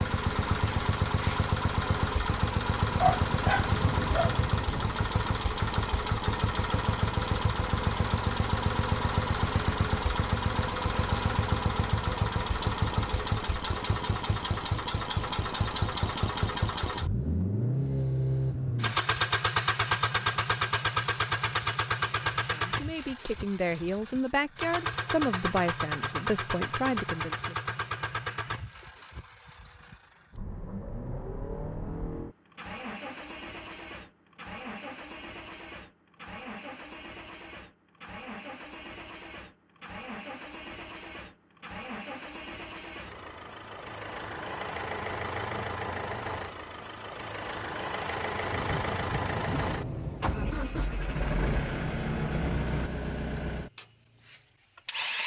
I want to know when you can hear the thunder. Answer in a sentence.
The thunder can be heard from 2.9 to 4.8 s and from 48.5 to 50.5 s.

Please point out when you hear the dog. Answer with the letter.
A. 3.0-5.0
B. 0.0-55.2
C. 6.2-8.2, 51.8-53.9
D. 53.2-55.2
A.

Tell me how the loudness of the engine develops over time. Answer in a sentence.
The loudness of the engine goes down, then up.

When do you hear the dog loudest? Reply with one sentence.
The volume of the dog peaks at 3 seconds.